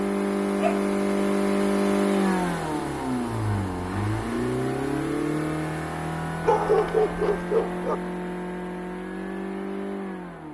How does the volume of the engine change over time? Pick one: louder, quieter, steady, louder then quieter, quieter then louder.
quieter.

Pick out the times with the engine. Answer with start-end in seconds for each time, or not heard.
0.0-10.4.